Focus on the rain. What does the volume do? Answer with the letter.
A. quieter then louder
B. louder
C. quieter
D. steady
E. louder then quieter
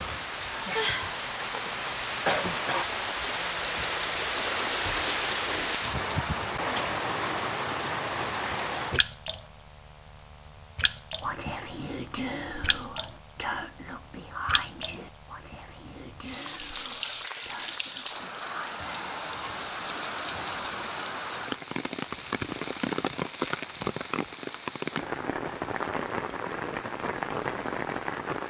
A.